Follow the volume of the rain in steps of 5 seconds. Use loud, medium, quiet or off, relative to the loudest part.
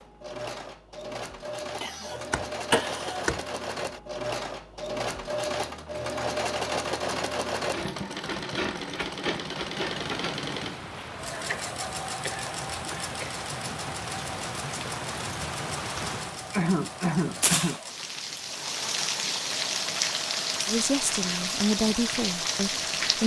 off, off, medium, loud, loud.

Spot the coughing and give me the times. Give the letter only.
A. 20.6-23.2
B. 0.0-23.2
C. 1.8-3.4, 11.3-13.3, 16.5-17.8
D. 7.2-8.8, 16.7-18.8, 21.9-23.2
C.